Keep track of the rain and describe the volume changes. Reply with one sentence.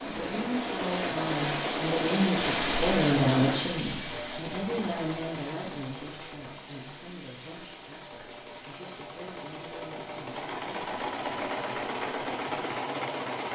The loudness of the rain goes down.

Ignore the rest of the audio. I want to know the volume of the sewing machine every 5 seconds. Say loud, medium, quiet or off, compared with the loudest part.
loud, medium, loud.